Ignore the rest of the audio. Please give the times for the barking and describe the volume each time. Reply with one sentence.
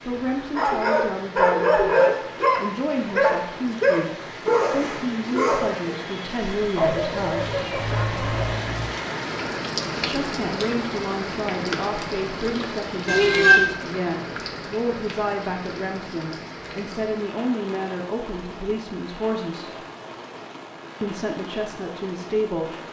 The barking can be heard from 0.6 to 8.6 s, getting quieter.